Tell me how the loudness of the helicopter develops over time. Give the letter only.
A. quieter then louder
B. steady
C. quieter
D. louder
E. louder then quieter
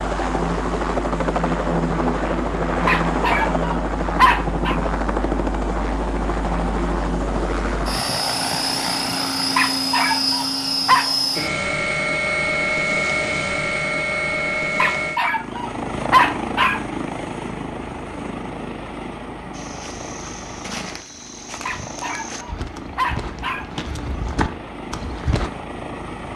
C.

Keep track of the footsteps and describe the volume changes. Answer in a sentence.
The loudness of the footsteps goes up.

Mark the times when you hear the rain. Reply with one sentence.
You can't hear the rain here.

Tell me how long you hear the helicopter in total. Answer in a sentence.
You can hear the helicopter for 26 seconds altogether.